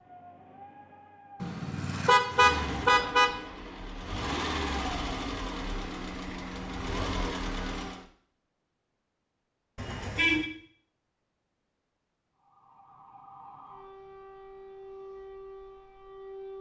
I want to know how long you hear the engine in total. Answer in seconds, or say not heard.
6 s.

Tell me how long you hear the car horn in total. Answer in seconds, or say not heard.
3 s.